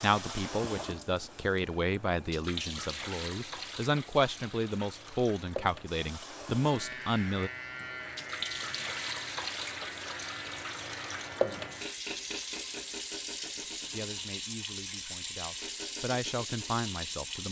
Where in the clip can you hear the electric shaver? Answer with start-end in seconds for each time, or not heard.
6.6-12.1.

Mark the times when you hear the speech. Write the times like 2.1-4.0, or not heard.
0.0-7.5, 13.9-17.4.